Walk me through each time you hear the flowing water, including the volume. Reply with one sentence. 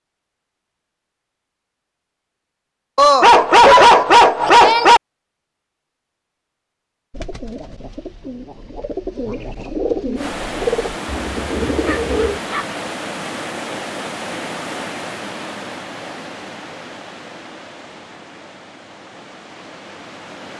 You can hear the flowing water from 10.2 to 20.5 s, getting quieter.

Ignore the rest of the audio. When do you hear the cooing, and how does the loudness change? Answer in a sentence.
The cooing can be heard from 7.1 to 12.4 s, getting louder.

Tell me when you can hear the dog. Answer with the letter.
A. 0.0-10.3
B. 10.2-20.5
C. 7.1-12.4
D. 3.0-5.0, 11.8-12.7
D.